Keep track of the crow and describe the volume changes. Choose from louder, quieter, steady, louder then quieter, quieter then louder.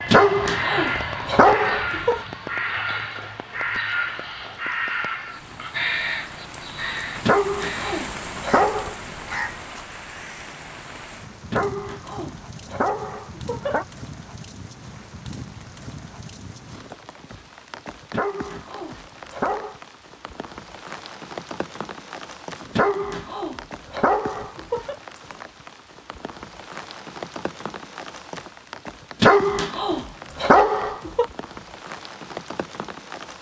quieter.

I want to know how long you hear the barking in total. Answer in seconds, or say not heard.
12 s.